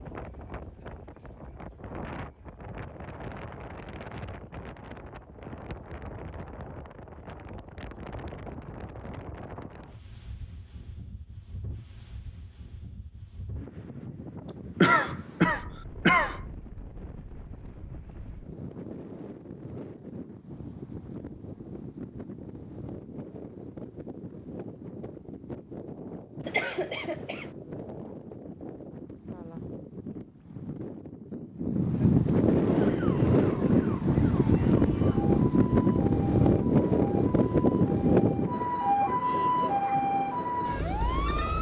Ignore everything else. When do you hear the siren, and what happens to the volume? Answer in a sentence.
The siren can be heard from 32.6 to 41.5 s, getting louder.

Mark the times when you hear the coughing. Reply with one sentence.
The coughing can be heard from 14.8 to 16.4 s and from 26.4 to 27.5 s.